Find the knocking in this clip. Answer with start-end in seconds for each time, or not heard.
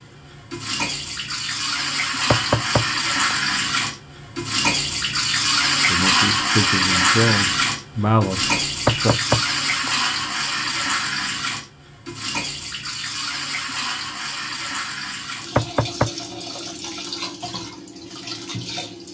2.3-3.4, 8.8-9.9, 15.6-16.1.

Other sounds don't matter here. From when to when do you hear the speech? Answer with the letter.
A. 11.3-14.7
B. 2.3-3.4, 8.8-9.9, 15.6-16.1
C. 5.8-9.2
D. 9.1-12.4
C.